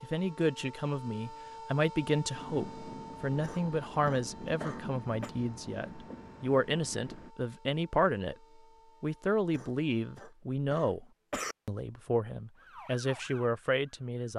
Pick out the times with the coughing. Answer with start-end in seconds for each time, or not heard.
3.4-5.3, 9.5-11.6.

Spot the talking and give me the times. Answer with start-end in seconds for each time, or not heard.
0.0-8.3, 9.0-11.1, 11.7-14.3.